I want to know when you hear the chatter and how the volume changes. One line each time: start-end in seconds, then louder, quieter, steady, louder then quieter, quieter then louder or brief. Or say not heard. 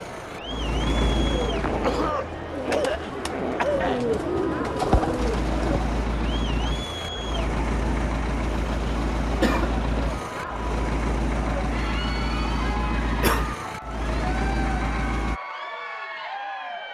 0.0-16.9 steady.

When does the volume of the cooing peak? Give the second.
5 s.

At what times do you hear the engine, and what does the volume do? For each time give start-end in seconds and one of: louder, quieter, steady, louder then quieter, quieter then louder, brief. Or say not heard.
0.0-2.1 brief
5.2-15.4 steady.